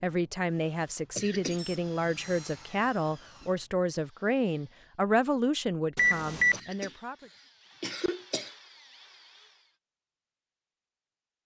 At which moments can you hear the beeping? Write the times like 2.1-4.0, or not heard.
1.5-2.6, 6.0-6.6.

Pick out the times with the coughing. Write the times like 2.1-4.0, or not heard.
1.1-1.6, 6.5-8.6.